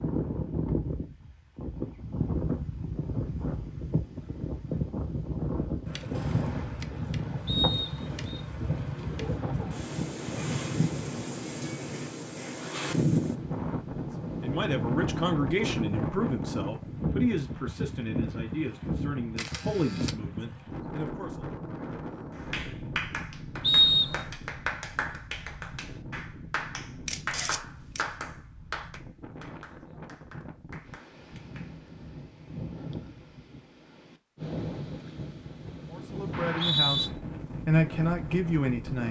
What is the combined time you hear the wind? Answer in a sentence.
The wind can be heard for 39 seconds in total.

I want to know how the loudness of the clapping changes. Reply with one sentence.
The loudness of the clapping goes down.